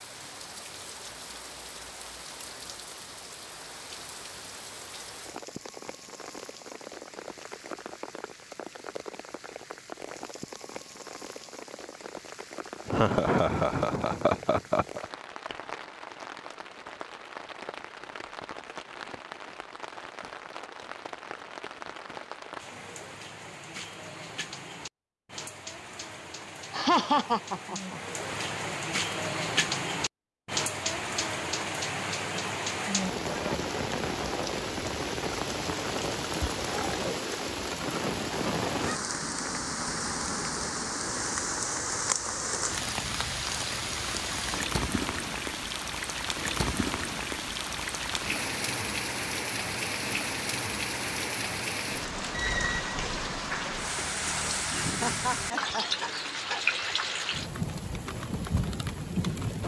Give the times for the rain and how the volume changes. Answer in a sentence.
You can hear the rain from 0.0 to 59.6 s, getting louder.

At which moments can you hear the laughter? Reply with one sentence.
You can hear the laughter from 12.8 to 15.1 s, from 26.7 to 28.0 s and from 54.7 to 56.0 s.